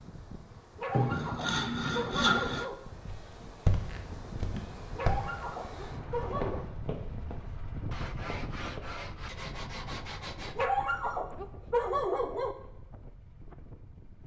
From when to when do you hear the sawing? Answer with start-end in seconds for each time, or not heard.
0.9-2.7, 7.9-10.7.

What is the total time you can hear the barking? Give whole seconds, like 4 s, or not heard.
6 s.